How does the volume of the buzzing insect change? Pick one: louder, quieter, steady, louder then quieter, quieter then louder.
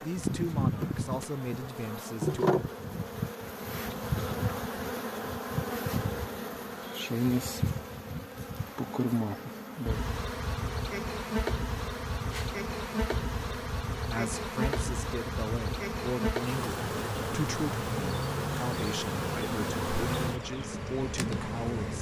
steady.